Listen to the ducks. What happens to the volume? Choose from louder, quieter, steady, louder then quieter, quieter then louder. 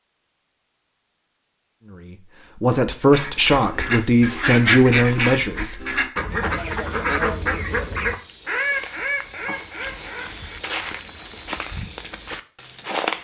quieter.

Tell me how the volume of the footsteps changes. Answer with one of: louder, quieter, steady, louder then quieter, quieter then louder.
louder.